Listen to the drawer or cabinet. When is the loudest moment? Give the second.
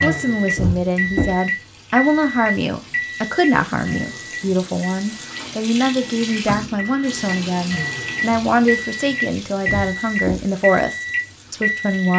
1 s.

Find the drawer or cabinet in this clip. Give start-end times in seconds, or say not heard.
0.6-1.4, 9.7-10.5.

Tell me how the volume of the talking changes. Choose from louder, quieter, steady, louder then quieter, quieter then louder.
steady.